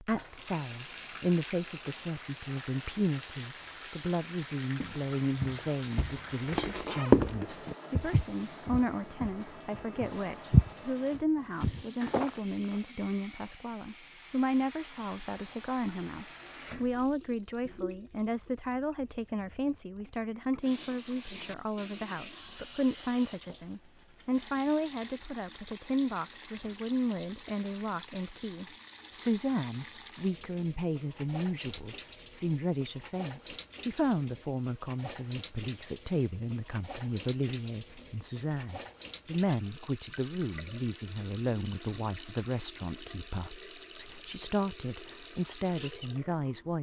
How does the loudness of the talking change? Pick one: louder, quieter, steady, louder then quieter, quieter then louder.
steady.